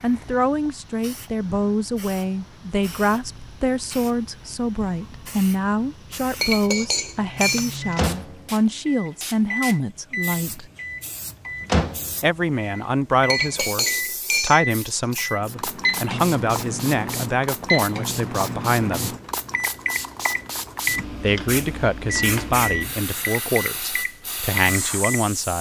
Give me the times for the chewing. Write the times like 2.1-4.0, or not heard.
not heard.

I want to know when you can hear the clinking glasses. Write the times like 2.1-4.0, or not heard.
6.4-8.1, 13.3-15.2.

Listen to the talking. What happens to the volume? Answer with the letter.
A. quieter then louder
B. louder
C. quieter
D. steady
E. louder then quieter
D.